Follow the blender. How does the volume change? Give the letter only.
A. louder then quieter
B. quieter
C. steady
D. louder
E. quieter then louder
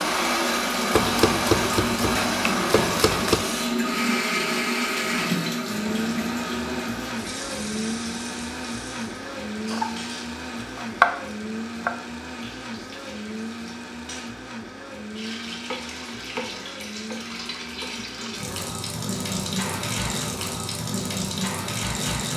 B.